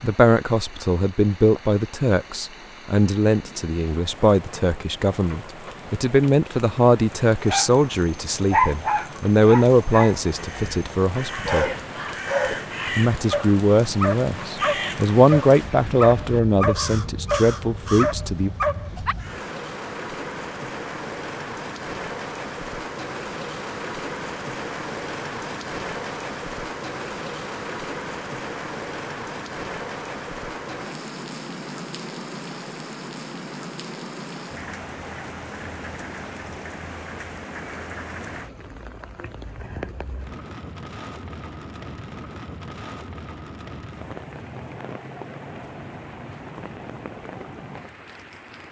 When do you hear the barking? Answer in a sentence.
You can hear the barking from 7.4 to 19.1 s.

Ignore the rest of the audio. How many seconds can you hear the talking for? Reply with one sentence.
You can hear the talking for 17 seconds altogether.